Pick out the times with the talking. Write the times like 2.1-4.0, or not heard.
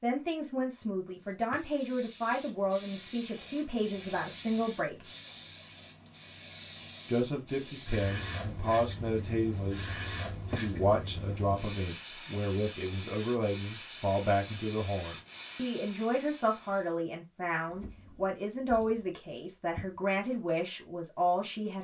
0.0-5.0, 7.0-21.7.